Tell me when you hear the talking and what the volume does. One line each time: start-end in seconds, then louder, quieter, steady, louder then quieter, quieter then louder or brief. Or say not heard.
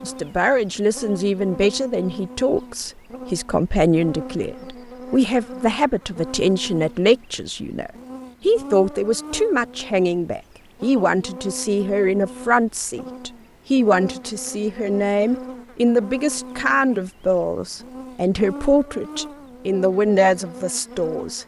0.0-21.4 steady.